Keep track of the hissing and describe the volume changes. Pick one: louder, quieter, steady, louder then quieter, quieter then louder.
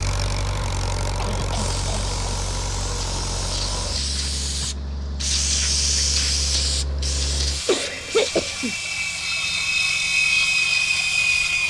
louder then quieter.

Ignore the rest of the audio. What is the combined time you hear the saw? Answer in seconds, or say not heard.
not heard.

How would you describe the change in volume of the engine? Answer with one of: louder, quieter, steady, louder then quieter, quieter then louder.
quieter then louder.